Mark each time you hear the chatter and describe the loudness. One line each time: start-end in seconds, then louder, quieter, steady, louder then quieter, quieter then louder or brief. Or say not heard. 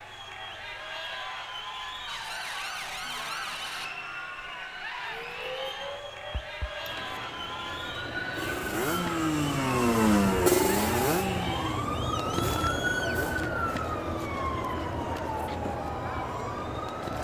0.0-17.2 steady.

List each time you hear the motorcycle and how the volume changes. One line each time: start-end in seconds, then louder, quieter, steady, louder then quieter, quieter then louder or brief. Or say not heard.
8.3-13.6 louder then quieter.